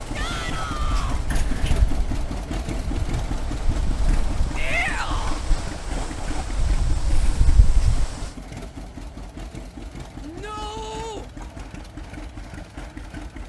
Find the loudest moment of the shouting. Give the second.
5 s.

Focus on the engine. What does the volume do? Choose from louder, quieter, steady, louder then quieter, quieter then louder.
quieter.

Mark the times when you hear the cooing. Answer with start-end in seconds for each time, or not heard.
not heard.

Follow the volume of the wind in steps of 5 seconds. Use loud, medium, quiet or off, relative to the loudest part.
loud, loud, off.